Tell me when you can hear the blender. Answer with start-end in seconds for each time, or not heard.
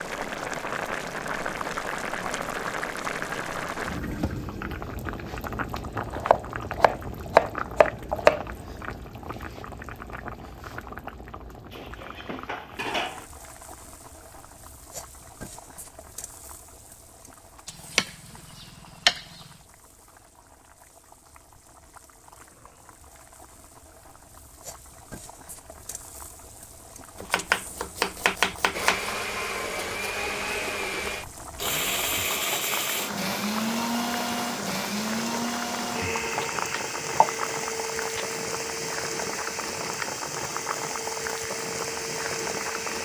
28.7-43.0.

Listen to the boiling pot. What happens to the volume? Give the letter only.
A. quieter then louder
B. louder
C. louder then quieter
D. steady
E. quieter
A.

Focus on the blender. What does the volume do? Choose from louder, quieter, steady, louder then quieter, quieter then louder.
quieter.